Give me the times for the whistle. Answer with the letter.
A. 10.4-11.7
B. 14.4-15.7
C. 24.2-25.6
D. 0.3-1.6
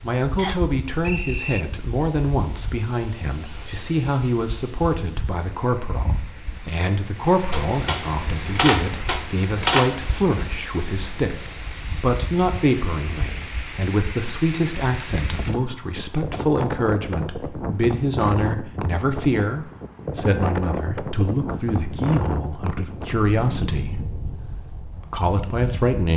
D.